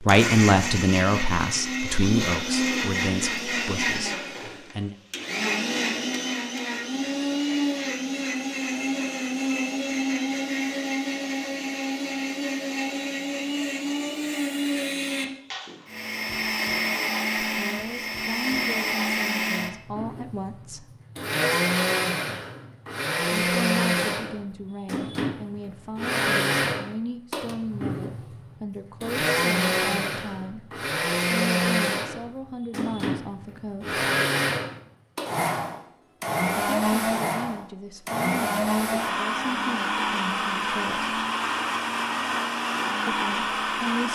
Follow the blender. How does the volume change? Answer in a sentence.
The loudness of the blender stays about the same.